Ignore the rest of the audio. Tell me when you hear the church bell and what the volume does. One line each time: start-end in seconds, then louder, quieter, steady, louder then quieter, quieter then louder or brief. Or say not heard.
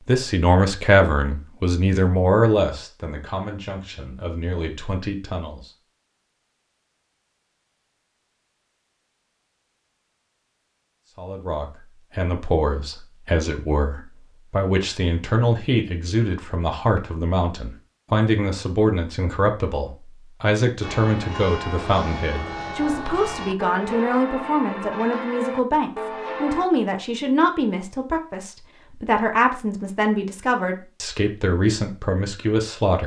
20.8-26.7 steady.